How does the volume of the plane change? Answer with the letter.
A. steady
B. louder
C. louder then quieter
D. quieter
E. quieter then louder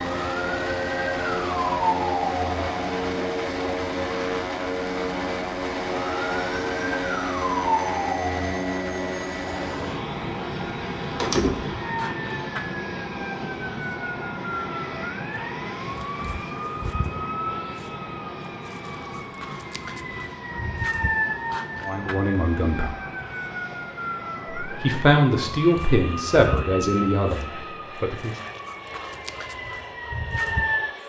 D.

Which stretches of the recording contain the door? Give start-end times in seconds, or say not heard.
11.2-11.8.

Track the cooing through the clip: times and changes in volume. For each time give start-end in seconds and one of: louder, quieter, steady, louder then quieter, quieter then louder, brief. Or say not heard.
not heard.